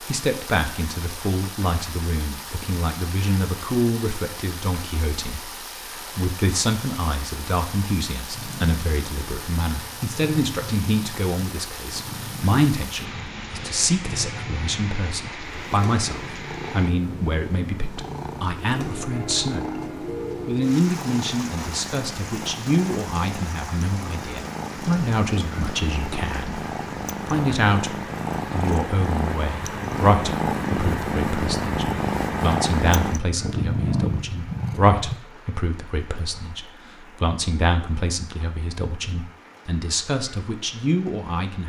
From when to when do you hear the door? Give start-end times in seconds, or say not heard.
not heard.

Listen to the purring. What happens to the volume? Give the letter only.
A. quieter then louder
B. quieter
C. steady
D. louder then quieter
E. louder
E.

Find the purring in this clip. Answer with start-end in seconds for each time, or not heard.
8.3-35.2.